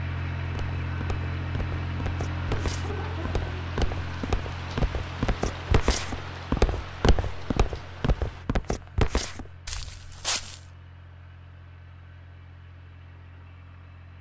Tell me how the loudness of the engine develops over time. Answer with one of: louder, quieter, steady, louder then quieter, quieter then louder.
quieter.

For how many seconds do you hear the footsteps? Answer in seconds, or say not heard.
10 s.